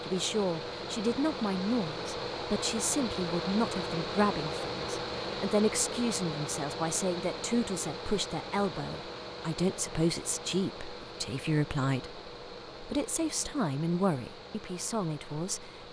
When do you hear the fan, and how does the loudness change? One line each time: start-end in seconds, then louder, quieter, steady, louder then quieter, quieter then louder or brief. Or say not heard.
0.0-15.8 quieter.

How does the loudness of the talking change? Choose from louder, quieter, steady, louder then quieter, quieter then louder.
steady.